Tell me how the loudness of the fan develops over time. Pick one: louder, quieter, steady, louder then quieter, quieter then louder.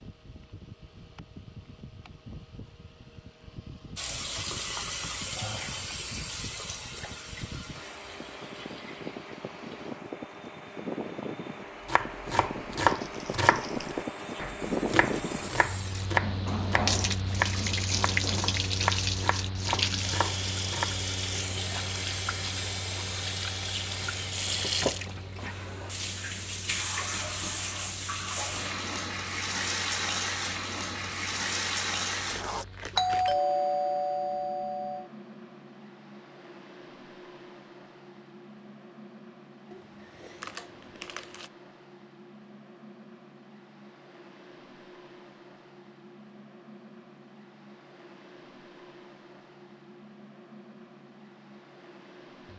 louder then quieter.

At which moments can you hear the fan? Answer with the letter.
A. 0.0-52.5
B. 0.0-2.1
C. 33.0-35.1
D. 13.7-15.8
A.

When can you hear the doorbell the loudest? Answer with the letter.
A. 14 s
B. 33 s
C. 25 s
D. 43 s
B.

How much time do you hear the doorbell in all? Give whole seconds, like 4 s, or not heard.
2 s.